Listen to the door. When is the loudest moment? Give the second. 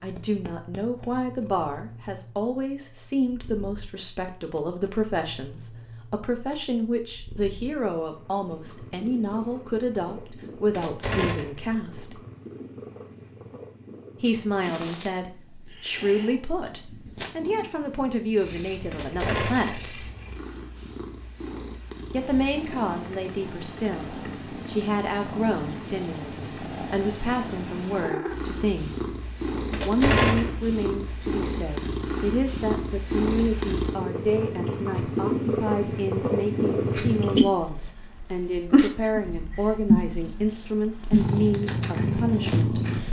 30 s.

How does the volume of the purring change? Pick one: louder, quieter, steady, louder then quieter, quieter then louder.
louder.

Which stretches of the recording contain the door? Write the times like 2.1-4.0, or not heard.
10.7-11.6, 18.9-19.8, 29.7-30.6.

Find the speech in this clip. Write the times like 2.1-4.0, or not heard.
0.0-12.2, 14.2-20.1, 22.1-29.1, 29.8-42.9.